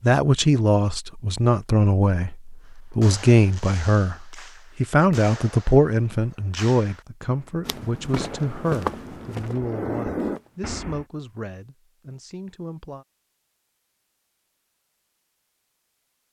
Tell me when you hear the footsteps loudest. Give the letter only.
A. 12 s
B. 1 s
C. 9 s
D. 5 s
C.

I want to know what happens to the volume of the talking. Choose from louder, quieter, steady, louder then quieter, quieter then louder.
quieter.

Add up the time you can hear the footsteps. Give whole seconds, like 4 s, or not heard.
3 s.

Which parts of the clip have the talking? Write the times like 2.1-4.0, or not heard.
0.0-13.1.